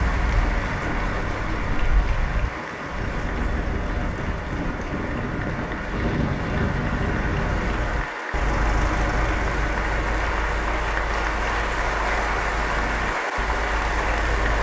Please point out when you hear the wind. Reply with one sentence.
You can hear the wind from 0.1 to 7.8 s.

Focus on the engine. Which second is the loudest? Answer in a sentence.
The loudest moment of the engine is at 9 seconds.